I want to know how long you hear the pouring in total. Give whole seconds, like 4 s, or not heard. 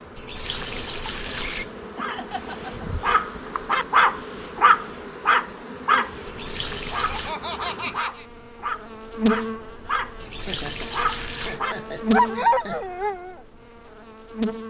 4 s.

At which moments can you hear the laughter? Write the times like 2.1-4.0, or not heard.
1.9-2.9, 6.9-8.2, 10.2-12.8.